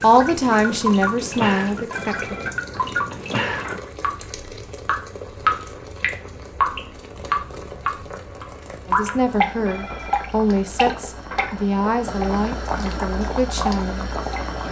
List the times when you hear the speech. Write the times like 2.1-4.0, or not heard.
0.0-2.4, 8.8-14.1.